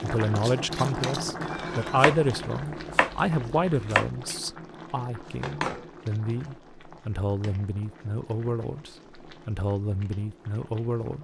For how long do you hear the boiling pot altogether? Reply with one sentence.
The boiling pot can be heard for 11 seconds in total.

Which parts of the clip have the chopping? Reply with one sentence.
You can hear the chopping from 1.4 to 4.0 s.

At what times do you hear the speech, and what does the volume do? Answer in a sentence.
You can hear the speech from 0.0 to 11.2 s, getting quieter.